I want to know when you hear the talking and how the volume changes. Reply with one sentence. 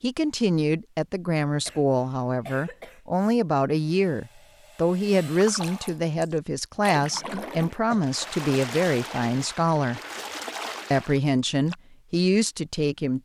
You can hear the talking from 0.0 to 10.0 s, at a steady volume; and briefly from 10.9 to 13.2 s.